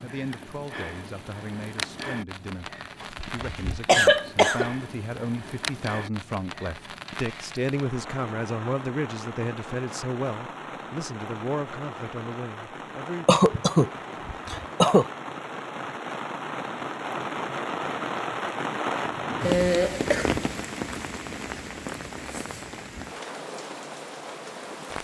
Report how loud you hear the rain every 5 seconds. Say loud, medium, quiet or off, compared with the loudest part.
medium, medium, medium, loud, loud.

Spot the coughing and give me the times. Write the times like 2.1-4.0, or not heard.
3.0-4.7, 13.2-15.1, 19.4-20.4.